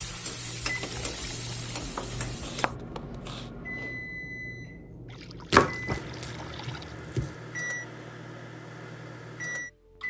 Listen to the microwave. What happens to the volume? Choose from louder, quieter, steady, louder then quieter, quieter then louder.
steady.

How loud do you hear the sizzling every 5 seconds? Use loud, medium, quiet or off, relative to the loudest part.
loud, off.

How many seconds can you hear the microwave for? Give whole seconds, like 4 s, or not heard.
10 s.